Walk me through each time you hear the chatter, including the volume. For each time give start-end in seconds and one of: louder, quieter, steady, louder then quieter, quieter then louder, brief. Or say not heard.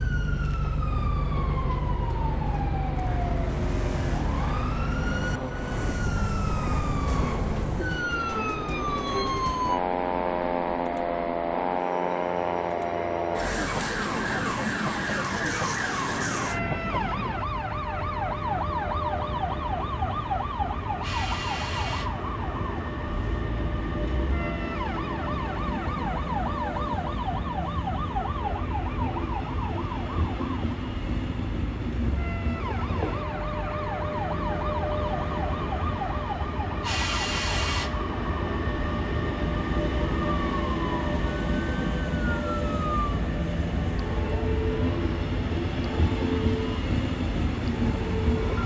not heard.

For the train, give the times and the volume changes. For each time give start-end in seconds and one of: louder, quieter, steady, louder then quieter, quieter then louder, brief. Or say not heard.
0.0-48.6 louder.